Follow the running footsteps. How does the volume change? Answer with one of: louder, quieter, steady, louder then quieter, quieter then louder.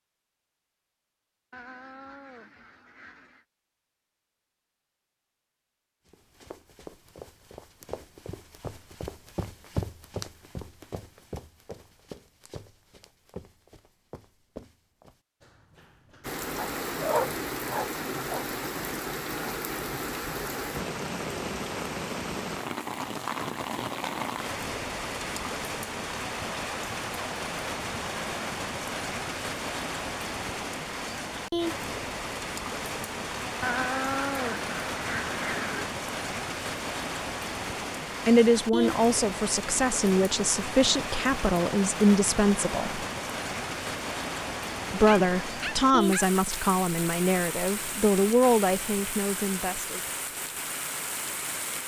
louder then quieter.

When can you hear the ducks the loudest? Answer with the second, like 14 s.
34 s.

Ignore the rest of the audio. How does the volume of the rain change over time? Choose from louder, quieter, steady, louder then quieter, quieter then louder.
steady.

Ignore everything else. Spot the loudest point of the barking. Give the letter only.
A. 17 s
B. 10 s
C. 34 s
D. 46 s
A.